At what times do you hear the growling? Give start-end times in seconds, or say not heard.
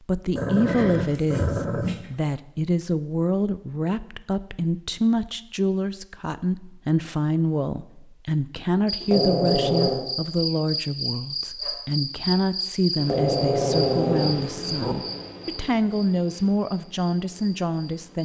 0.3-2.1, 9.0-10.1, 12.9-14.9.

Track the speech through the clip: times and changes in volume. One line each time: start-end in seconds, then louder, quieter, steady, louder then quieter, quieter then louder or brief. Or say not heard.
0.1-18.2 steady.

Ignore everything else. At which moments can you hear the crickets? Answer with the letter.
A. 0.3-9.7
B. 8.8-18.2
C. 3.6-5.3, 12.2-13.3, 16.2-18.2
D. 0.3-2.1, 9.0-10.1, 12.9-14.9
B.